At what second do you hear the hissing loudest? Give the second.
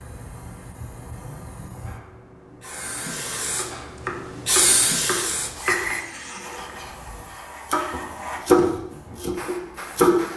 5 s.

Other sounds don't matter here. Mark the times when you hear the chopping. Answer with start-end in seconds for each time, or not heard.
3.5-10.1.